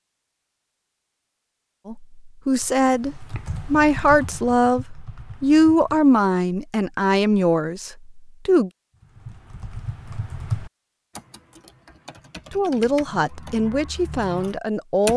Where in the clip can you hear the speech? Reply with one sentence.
The speech can be heard from 1.9 to 8.7 s and from 12.5 to 15.1 s.